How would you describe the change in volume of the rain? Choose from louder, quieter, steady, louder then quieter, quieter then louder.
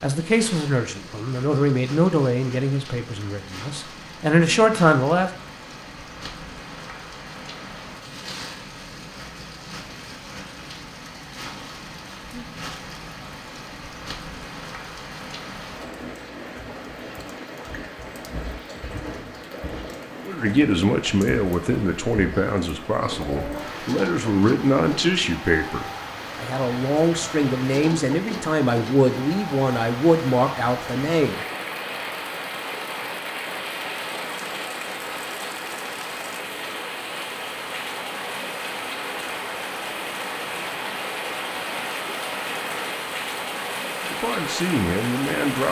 louder.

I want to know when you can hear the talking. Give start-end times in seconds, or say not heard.
0.0-5.3, 20.2-31.4, 44.0-45.6.